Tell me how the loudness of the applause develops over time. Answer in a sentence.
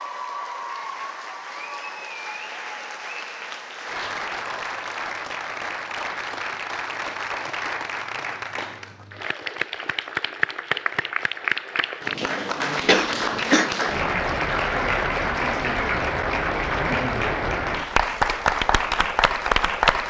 The loudness of the applause goes up.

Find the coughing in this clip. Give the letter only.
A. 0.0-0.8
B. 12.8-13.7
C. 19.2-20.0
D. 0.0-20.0
B.